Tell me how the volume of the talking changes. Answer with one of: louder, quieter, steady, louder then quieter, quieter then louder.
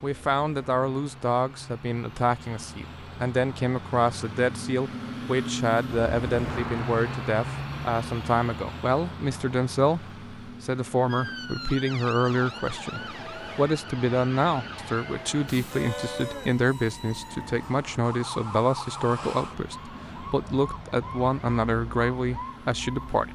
steady.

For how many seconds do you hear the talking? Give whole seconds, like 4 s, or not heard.
23 s.